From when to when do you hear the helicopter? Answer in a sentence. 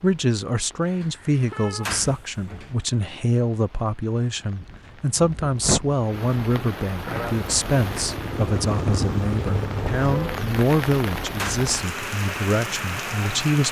You can hear the helicopter from 7.0 to 10.6 s.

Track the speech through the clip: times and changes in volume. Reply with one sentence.
The speech can be heard from 0.0 to 13.6 s, at a steady volume.